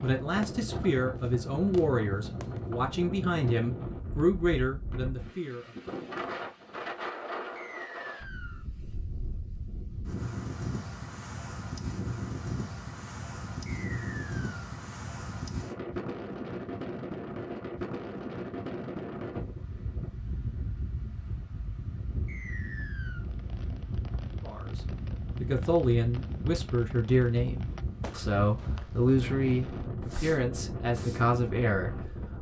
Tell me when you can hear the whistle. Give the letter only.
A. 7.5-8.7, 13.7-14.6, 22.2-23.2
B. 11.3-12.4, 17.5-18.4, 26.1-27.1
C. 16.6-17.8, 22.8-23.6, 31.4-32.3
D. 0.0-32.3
A.